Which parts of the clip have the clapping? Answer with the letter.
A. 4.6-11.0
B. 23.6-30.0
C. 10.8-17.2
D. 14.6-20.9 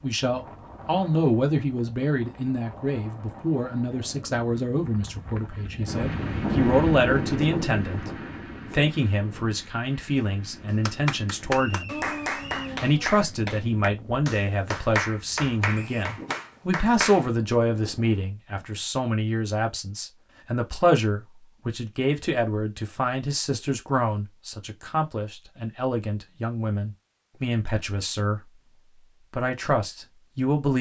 C.